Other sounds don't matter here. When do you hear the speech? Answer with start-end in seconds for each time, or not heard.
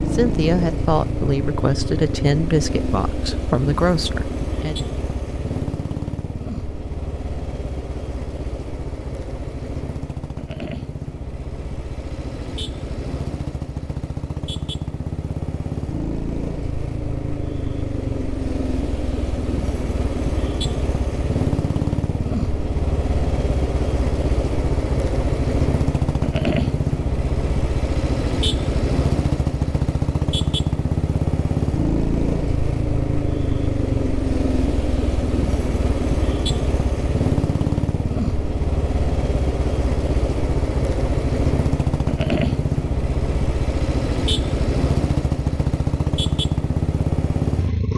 0.1-4.8.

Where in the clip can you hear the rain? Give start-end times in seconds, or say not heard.
not heard.